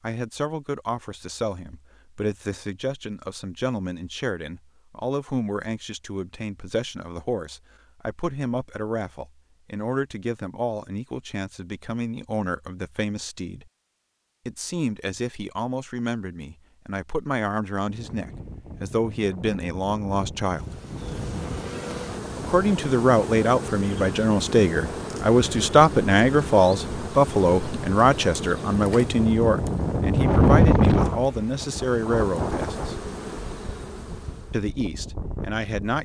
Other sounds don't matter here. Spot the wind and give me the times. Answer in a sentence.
You can hear the wind from 17.9 to 35.9 s.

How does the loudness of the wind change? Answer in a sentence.
The loudness of the wind goes up, then down.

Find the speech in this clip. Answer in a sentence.
The speech can be heard from 0.0 to 13.7 s, from 14.4 to 20.8 s, from 22.4 to 33.1 s and from 34.5 to 35.9 s.